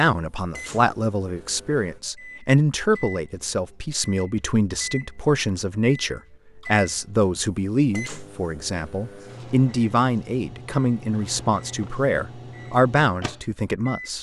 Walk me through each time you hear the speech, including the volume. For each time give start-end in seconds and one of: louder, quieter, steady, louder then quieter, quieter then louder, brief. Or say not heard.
0.0-14.1 steady.